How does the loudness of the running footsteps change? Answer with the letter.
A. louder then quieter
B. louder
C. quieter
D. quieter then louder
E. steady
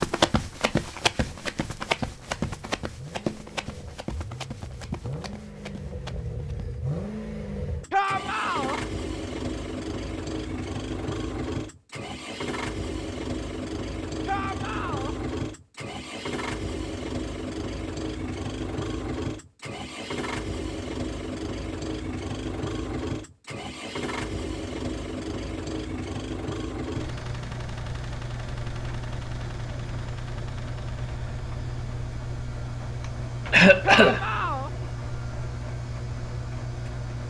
C.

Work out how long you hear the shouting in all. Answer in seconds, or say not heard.
3 s.